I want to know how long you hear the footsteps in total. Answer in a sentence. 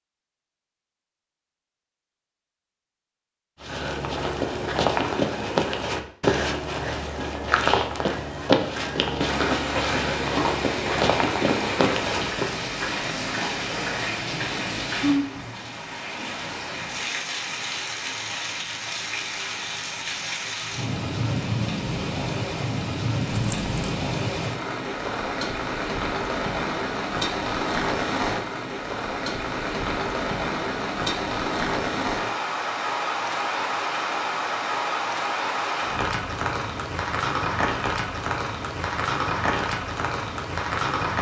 The footsteps can be heard for 9 seconds in total.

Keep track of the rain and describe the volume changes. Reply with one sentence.
The volume of the rain stays about the same.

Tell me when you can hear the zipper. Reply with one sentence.
You can hear the zipper from 23.2 to 23.9 s.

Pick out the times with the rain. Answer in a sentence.
The rain can be heard from 9.2 to 41.1 s.